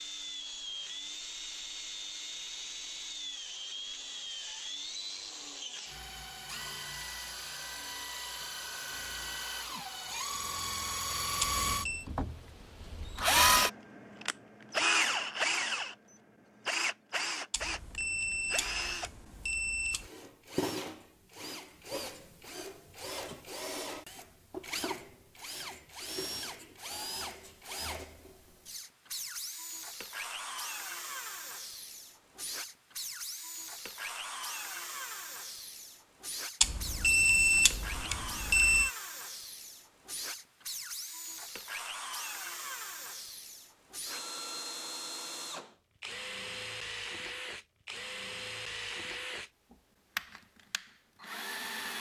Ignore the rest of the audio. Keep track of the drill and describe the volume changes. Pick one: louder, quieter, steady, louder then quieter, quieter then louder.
louder then quieter.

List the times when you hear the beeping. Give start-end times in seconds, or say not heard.
11.4-12.1, 17.5-20.1, 36.6-38.9.